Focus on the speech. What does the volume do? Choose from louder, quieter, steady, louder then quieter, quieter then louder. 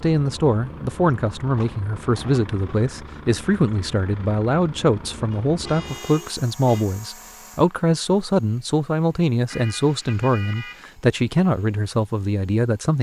steady.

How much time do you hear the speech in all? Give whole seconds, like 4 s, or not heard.
13 s.